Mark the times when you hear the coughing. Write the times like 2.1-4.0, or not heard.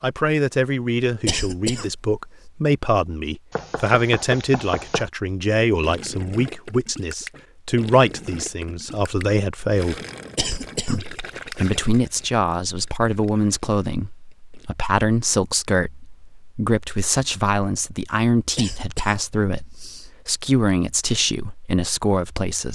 1.2-2.0, 10.3-11.7, 18.6-20.1.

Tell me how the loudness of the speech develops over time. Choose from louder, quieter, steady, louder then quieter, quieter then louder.
steady.